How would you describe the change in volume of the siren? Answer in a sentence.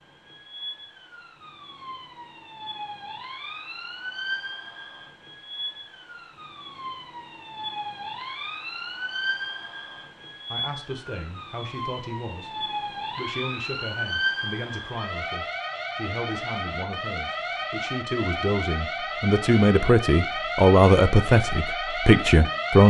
The loudness of the siren goes up.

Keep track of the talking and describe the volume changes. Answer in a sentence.
The loudness of the talking goes up.